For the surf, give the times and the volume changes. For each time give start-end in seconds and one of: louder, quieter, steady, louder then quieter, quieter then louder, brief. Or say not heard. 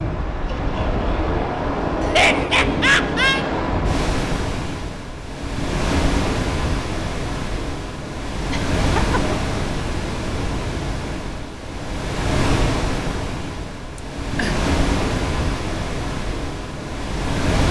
0.0-17.6 steady.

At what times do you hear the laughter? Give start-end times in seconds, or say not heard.
2.0-3.5, 8.5-9.3, 13.9-14.6.